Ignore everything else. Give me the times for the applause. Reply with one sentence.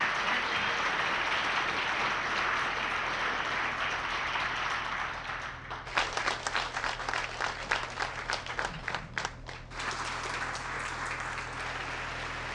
The applause can be heard from 0.0 to 12.5 s.